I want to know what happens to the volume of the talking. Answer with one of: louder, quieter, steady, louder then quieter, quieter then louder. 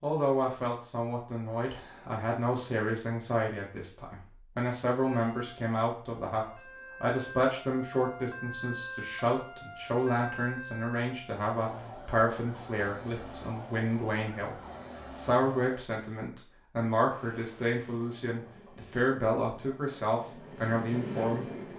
steady.